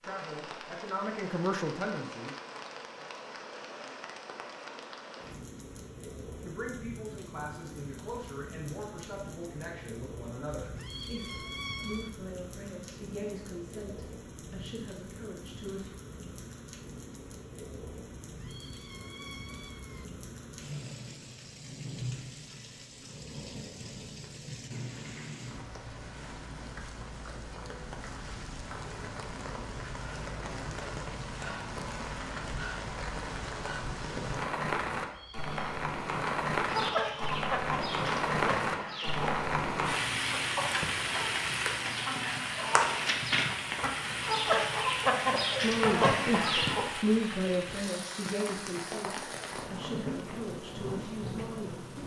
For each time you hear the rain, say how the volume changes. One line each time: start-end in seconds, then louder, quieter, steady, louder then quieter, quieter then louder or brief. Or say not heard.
0.0-52.0 louder.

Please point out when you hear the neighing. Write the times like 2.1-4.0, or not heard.
not heard.